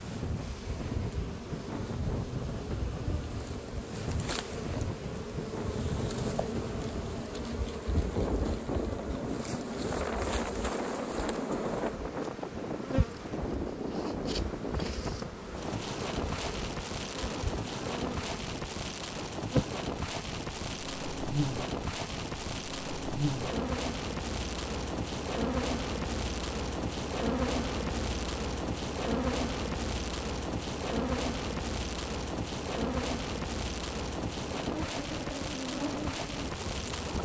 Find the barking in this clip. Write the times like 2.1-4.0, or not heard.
not heard.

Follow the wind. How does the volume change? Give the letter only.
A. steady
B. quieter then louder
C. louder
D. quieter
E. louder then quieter
A.